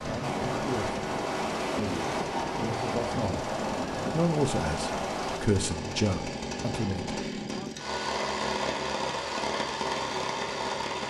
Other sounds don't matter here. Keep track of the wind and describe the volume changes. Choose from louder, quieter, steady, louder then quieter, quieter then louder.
steady.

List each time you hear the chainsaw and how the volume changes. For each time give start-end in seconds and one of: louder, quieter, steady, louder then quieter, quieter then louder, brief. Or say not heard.
0.0-11.0 louder.